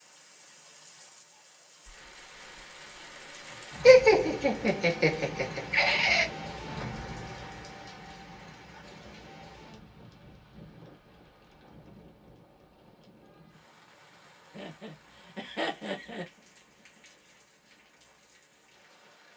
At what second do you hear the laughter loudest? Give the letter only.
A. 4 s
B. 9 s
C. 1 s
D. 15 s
A.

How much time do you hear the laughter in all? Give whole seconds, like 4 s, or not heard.
4 s.